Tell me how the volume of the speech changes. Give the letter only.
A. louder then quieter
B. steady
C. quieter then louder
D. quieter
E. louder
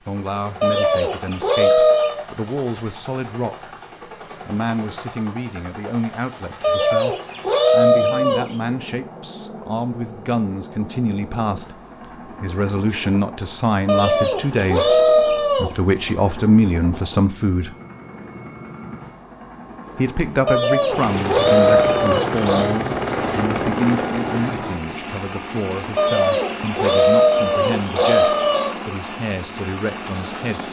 A.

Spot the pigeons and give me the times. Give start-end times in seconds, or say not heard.
0.6-2.2, 6.6-8.6, 13.8-15.7, 20.4-22.8, 25.9-28.8.